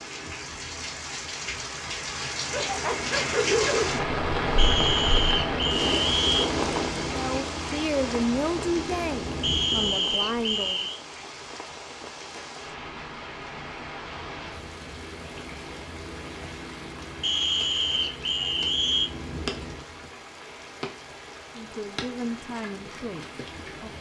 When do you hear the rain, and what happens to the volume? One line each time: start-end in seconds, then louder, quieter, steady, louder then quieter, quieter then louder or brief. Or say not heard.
0.0-23.9 quieter.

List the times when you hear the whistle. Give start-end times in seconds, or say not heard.
4.5-6.5, 9.4-11.0, 17.2-19.1.